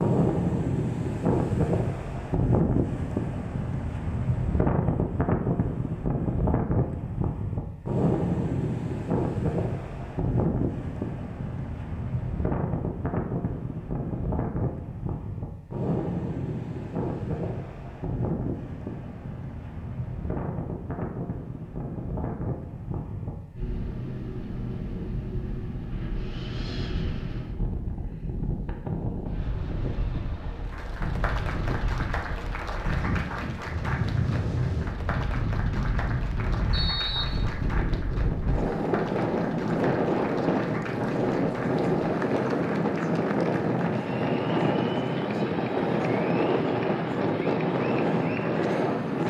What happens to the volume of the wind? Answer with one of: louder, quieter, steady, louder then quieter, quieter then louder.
quieter then louder.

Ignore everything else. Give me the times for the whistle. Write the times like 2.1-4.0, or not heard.
36.7-37.5.